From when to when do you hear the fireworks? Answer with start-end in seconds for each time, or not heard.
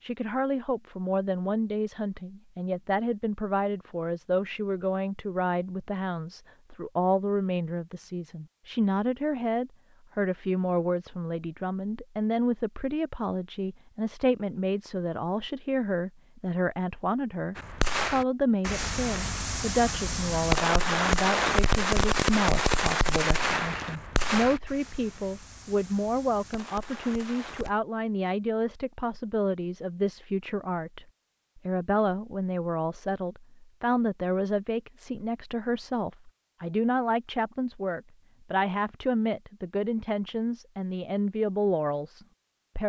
17.6-27.8.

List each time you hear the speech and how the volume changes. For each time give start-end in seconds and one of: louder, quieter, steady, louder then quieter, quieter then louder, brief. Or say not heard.
0.0-42.8 steady.